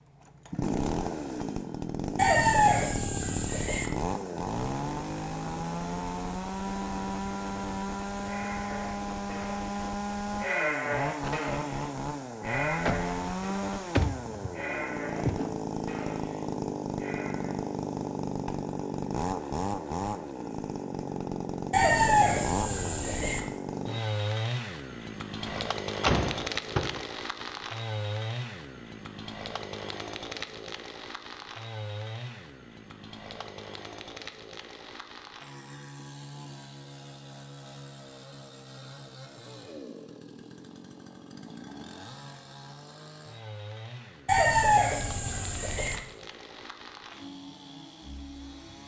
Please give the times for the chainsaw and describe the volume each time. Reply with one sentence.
You can hear the chainsaw from 0.1 to 48.8 s, getting quieter.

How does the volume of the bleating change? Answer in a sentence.
The volume of the bleating goes up, then down.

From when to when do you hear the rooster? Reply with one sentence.
The rooster can be heard from 2.1 to 3.9 s, from 21.7 to 23.4 s and from 44.2 to 46.0 s.